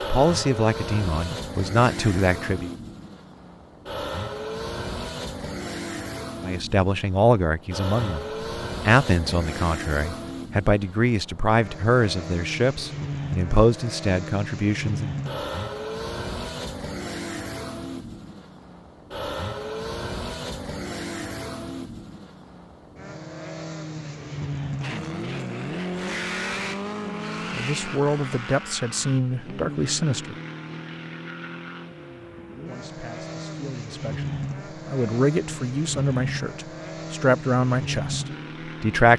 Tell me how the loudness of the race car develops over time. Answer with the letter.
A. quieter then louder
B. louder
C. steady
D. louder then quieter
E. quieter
C.